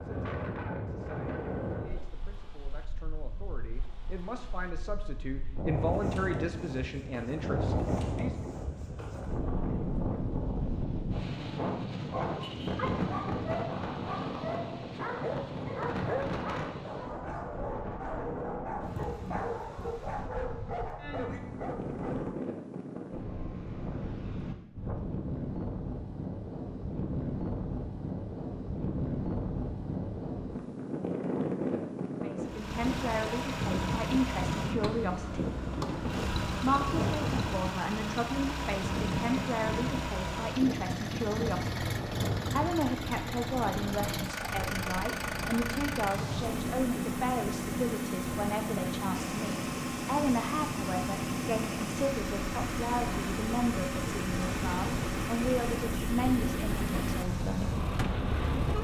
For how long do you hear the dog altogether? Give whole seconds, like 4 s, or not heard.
10 s.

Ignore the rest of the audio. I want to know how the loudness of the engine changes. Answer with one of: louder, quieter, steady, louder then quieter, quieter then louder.
steady.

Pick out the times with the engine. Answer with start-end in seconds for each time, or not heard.
32.4-58.7.